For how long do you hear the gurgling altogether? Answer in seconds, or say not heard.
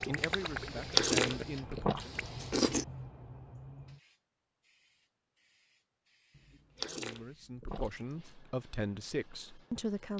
2 s.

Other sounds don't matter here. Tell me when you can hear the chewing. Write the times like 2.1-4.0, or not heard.
0.5-2.9, 6.3-8.3.